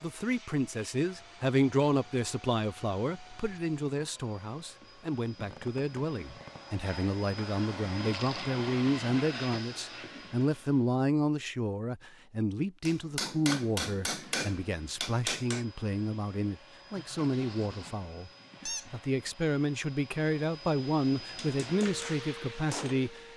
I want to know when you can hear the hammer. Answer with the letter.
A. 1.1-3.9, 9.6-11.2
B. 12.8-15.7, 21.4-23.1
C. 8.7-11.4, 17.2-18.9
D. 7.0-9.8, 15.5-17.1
B.